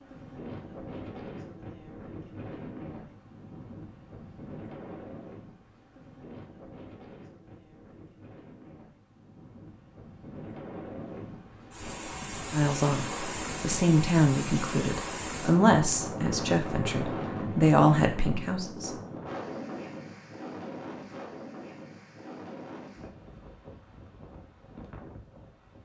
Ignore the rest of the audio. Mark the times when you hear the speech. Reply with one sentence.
You can hear the speech from 12.5 to 18.9 s.